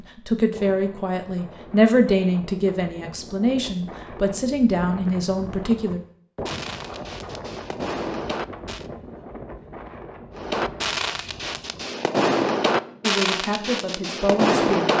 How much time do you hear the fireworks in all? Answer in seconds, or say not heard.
7 s.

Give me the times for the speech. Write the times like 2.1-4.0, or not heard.
0.0-6.0, 13.0-14.9.